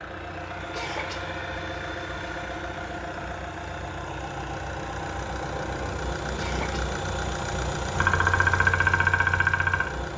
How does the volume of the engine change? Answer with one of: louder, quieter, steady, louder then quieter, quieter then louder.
louder.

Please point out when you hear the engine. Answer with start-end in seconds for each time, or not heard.
0.0-10.1.